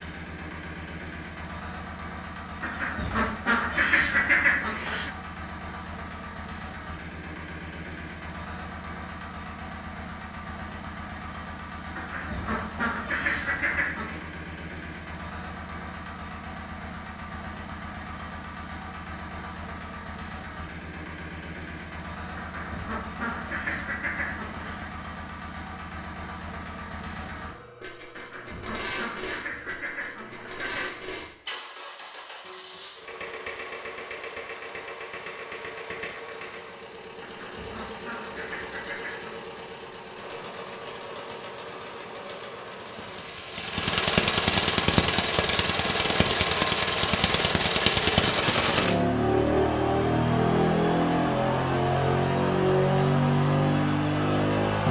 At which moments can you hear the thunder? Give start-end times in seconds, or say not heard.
not heard.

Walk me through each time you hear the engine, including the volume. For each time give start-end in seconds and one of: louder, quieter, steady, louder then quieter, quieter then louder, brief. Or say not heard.
0.0-54.8 louder.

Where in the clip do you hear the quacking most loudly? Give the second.
4 s.